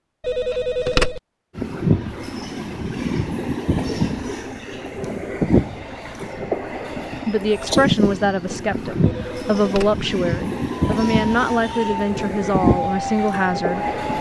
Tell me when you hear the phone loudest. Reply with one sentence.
The volume of the phone peaks at 1 second.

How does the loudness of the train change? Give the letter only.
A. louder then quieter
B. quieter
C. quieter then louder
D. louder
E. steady
E.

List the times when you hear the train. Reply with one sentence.
You can hear the train from 1.6 to 14.1 s.